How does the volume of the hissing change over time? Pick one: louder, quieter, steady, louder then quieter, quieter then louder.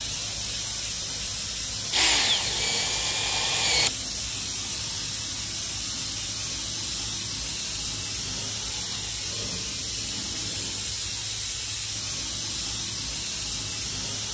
steady.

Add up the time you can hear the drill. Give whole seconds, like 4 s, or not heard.
2 s.